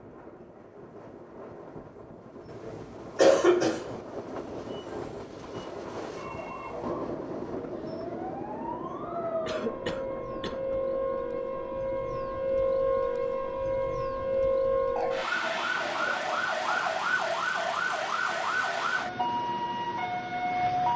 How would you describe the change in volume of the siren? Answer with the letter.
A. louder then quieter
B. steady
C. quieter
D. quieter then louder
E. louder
E.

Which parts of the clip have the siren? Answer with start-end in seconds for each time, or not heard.
6.1-20.9.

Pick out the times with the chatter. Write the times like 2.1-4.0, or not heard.
not heard.